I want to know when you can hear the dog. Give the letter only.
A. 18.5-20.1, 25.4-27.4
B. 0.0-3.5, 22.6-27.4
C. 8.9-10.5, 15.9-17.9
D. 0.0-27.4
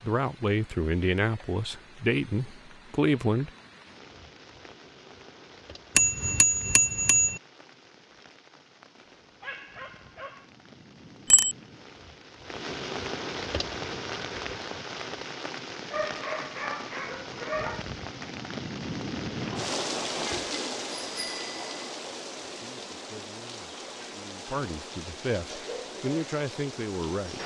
C.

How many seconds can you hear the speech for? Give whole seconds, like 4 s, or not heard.
8 s.